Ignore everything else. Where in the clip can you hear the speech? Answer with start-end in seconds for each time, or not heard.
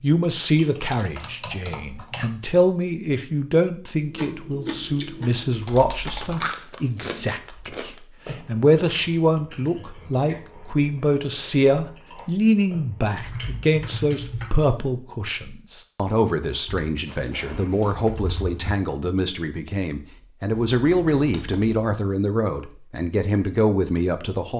0.0-24.5.